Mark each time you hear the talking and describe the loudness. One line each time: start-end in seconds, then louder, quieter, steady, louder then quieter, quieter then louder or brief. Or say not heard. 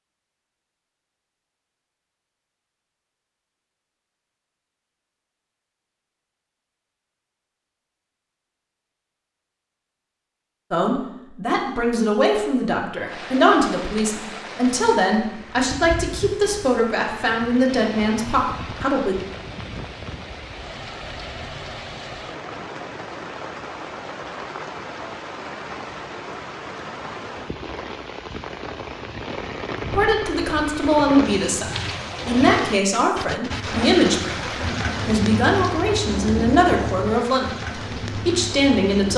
10.7-19.1 steady
29.9-39.1 steady.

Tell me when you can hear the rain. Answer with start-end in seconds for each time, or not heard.
13.1-39.1.